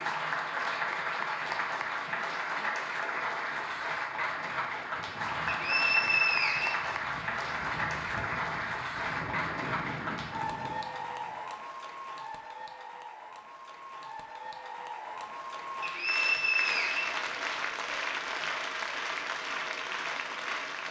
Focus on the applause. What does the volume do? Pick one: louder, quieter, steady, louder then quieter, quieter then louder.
quieter then louder.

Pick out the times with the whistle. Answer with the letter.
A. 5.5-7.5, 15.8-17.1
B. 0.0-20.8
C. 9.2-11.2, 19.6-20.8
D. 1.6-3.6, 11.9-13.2
A.